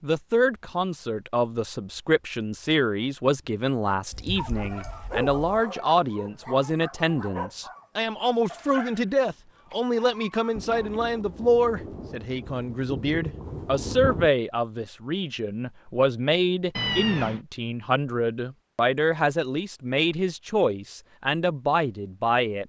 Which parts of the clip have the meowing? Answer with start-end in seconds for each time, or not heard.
4.1-5.7, 16.8-17.4.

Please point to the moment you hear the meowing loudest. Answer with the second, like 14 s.
17 s.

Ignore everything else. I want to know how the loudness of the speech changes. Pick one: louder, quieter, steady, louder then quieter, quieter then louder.
steady.